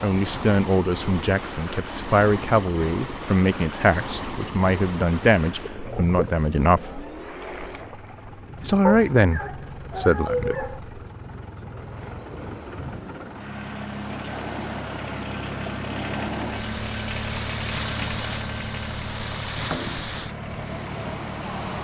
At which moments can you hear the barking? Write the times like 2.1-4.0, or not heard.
8.8-10.8.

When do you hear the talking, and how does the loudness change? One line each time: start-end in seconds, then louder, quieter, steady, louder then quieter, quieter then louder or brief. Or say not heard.
0.0-7.0 steady
8.6-10.8 brief.